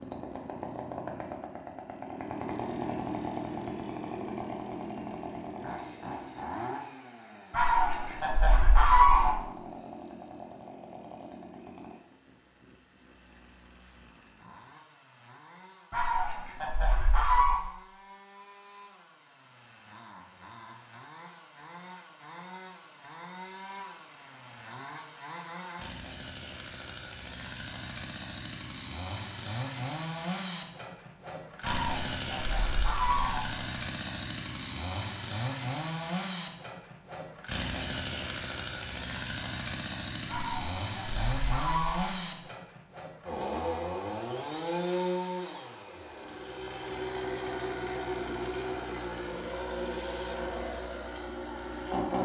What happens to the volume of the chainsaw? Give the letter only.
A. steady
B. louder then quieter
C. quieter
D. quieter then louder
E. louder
D.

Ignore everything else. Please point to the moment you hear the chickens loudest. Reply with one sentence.
The loudest moment of the chickens is at 9 seconds.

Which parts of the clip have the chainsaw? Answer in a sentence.
The chainsaw can be heard from 0.0 to 52.2 s.